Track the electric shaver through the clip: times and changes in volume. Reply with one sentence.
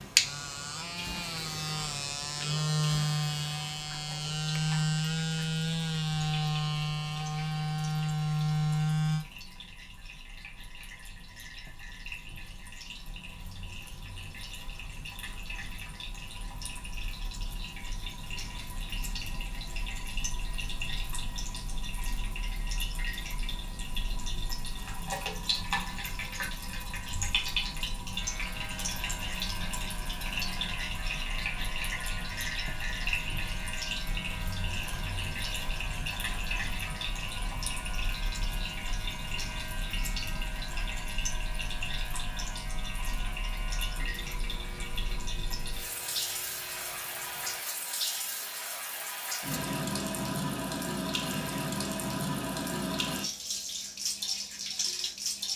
You can hear the electric shaver from 0.0 to 9.2 s, getting louder; and from 28.1 to 47.6 s, at a steady volume.